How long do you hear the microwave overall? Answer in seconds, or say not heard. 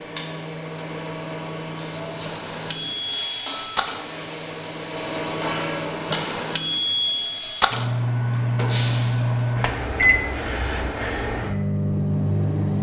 13 s.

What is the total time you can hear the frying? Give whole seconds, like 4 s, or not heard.
6 s.